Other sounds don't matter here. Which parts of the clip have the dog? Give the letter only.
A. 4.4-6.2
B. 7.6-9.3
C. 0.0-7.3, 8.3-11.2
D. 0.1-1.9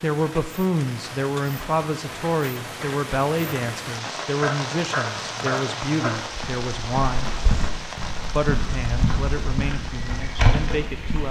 A.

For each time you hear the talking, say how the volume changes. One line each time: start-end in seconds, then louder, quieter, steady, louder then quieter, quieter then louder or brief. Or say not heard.
0.0-7.3 steady
8.3-11.2 brief.